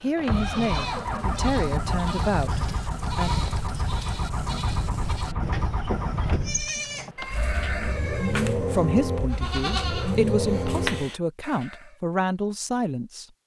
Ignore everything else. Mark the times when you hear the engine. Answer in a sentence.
The engine can be heard from 0.0 to 11.1 s.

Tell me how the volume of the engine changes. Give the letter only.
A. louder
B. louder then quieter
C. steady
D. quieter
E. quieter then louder
C.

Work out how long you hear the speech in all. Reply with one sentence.
The speech can be heard for 8 seconds in total.